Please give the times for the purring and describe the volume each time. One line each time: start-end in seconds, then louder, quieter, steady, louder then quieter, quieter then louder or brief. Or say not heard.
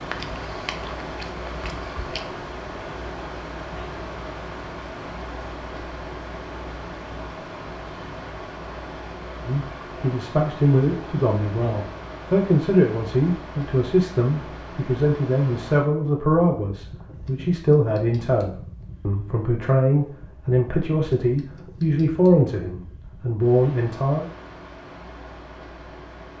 not heard.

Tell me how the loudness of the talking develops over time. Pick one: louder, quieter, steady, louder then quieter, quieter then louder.
steady.